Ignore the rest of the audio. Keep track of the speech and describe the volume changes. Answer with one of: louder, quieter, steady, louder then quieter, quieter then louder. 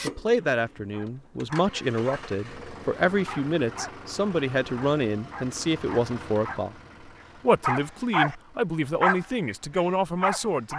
steady.